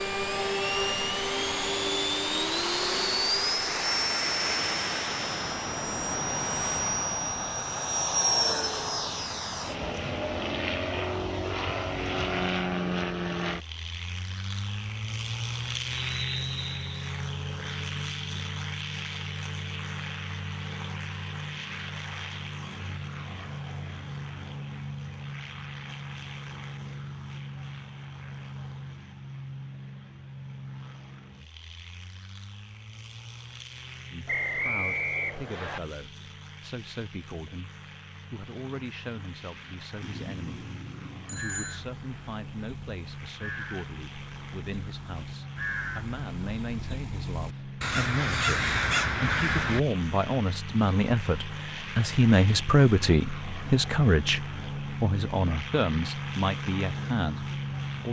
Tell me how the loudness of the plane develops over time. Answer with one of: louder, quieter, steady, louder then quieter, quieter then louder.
quieter then louder.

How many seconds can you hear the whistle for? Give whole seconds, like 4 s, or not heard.
3 s.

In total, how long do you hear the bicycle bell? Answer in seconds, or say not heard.
2 s.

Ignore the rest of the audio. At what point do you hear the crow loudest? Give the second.
49 s.